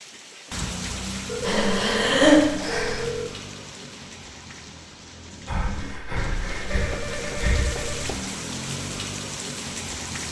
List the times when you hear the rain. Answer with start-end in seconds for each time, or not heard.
0.0-10.2.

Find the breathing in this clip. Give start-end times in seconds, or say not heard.
1.4-3.0, 5.5-7.9.